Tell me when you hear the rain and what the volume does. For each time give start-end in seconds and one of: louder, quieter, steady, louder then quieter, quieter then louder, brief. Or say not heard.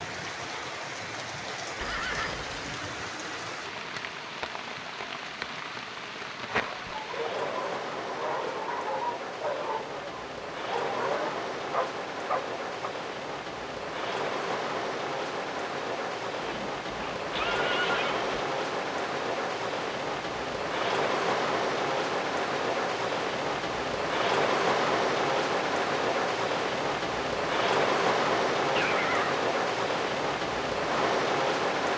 0.0-31.9 louder.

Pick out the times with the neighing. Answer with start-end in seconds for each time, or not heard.
1.8-2.5, 16.4-18.4, 28.8-29.4.